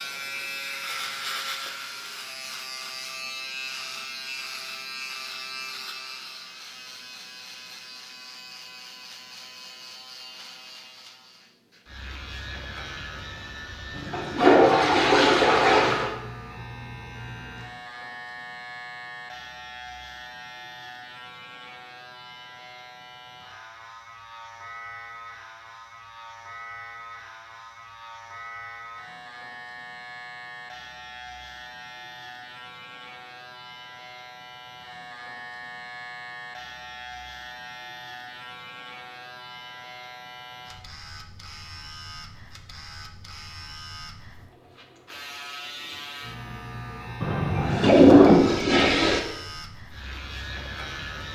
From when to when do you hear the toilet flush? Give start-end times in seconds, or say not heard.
13.9-16.1, 47.2-49.2.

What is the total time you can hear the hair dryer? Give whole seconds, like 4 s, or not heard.
not heard.